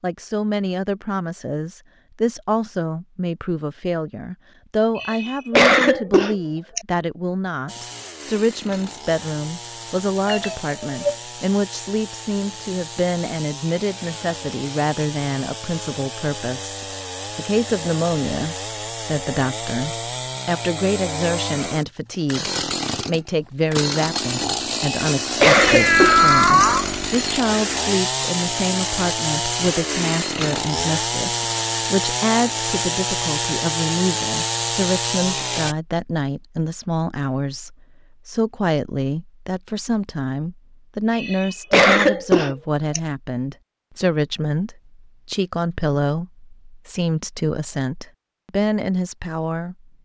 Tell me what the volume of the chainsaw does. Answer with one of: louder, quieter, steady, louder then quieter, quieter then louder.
louder.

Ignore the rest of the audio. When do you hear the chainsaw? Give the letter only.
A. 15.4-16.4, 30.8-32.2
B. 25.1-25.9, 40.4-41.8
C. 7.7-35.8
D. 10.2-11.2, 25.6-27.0
C.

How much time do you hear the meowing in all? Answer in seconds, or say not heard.
2 s.